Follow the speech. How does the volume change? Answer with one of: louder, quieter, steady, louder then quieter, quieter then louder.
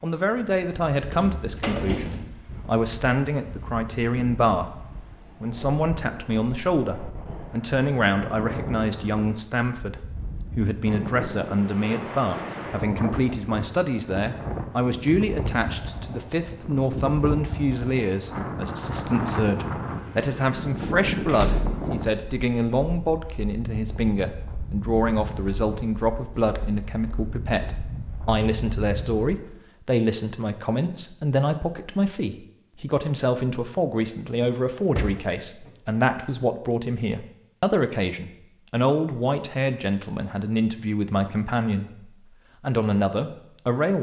steady.